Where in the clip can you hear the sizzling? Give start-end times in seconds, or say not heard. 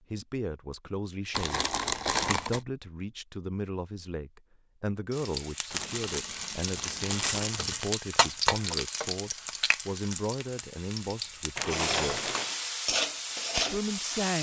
5.1-14.3.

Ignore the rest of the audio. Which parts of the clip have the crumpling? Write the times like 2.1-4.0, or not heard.
1.3-2.6, 5.7-7.7, 11.6-12.6.